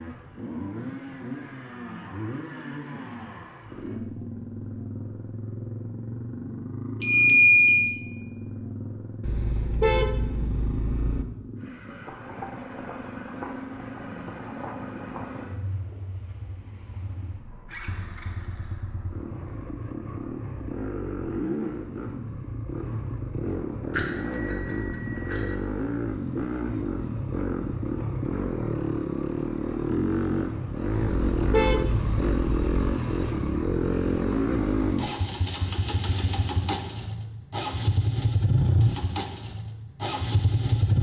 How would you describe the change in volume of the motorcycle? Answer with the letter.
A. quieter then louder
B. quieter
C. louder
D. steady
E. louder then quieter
C.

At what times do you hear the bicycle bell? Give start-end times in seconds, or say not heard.
7.0-7.9, 23.9-25.6.